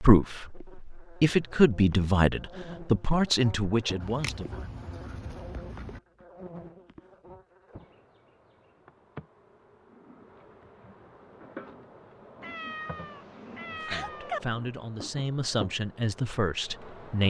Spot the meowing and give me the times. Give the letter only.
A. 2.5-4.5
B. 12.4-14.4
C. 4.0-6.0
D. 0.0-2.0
B.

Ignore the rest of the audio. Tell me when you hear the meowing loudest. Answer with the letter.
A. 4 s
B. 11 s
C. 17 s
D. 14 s
D.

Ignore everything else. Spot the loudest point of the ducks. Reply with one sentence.
The volume of the ducks peaks at 4 seconds.